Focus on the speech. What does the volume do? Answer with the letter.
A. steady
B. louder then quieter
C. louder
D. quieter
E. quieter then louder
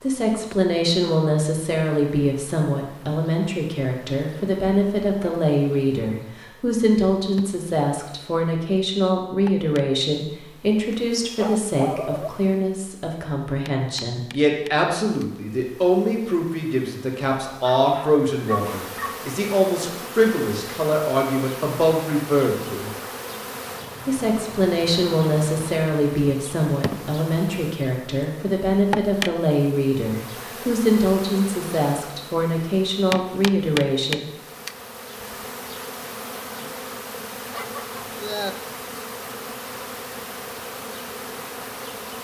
A.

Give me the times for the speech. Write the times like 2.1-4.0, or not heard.
0.0-22.9, 24.1-34.2.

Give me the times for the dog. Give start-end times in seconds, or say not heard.
10.9-12.3, 17.6-19.1, 37.5-38.5.